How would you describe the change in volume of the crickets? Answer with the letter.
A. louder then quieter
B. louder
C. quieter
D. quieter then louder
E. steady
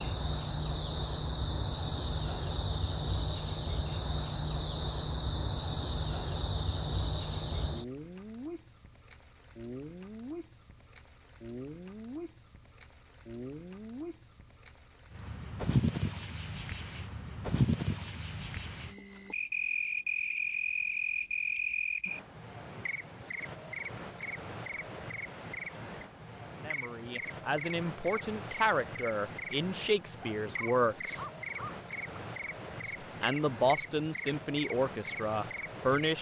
E.